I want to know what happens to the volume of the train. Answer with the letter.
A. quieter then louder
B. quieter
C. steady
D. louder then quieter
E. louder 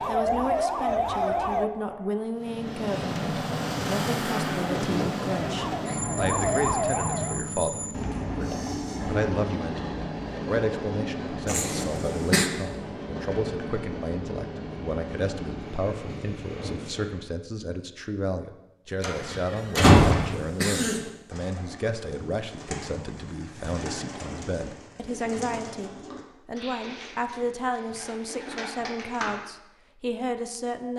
B.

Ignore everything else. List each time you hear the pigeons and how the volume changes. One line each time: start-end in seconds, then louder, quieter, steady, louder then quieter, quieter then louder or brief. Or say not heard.
21.3-29.4 steady.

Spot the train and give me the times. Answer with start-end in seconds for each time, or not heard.
2.4-17.3.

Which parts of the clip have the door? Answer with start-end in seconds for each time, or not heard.
19.0-20.4.